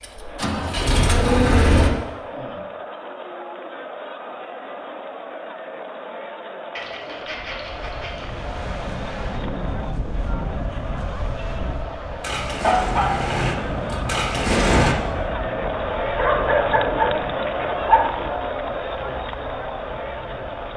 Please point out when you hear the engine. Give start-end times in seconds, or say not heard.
0.0-1.9, 12.2-14.9.